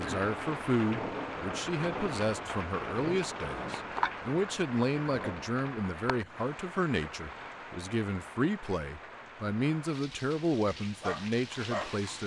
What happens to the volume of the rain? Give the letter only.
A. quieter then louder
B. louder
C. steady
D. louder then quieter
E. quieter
E.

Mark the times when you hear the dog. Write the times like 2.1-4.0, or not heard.
11.0-12.0.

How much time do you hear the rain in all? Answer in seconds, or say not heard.
12 s.